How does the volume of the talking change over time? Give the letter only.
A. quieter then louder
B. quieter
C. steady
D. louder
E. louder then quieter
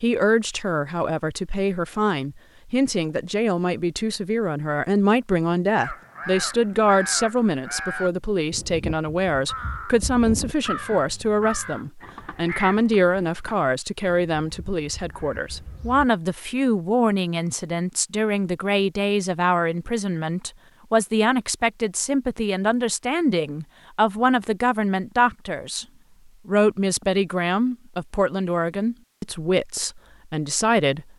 C.